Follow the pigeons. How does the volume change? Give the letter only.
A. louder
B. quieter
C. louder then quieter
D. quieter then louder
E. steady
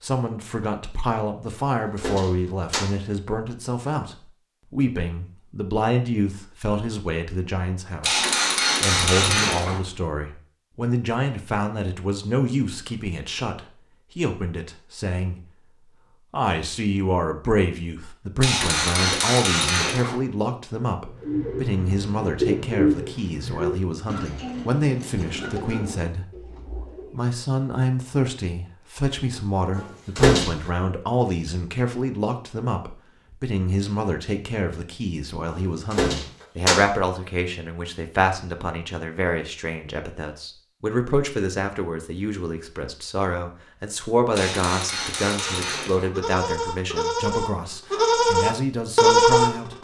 B.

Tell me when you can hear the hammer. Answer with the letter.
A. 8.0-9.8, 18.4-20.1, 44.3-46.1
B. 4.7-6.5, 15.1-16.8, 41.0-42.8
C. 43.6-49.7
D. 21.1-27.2
A.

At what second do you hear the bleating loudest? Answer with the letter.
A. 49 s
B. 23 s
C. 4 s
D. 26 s
A.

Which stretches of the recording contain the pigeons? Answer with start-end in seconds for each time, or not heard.
21.1-27.2.